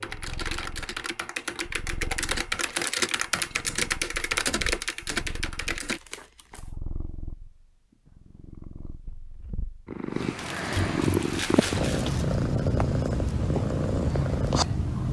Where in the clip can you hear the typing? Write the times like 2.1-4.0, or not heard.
0.0-6.0.